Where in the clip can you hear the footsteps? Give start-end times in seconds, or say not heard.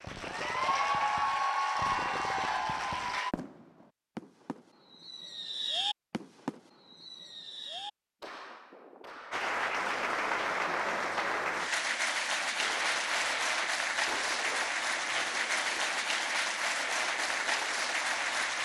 not heard.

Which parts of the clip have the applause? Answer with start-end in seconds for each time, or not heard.
0.0-3.4, 9.3-18.6.